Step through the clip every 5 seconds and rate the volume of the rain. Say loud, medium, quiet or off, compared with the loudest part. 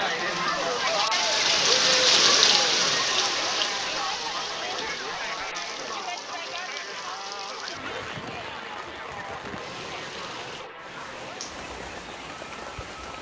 loud, quiet, quiet.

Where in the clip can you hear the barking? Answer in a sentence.
You can't hear the barking here.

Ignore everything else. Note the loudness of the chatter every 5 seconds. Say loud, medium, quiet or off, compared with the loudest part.
loud, medium, quiet.